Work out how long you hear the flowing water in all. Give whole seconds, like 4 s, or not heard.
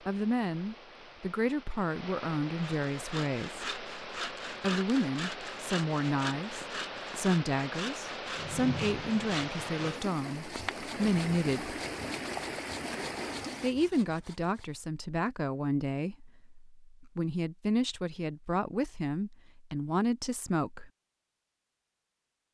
14 s.